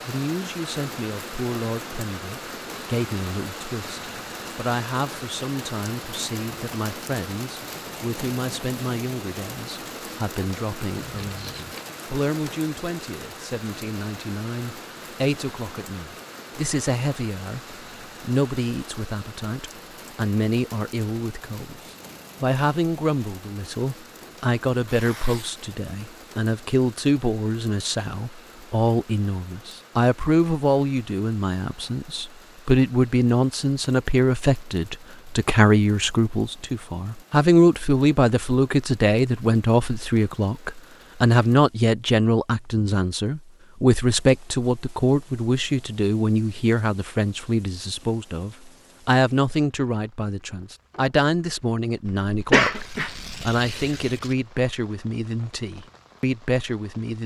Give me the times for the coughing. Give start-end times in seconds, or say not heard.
52.0-53.2.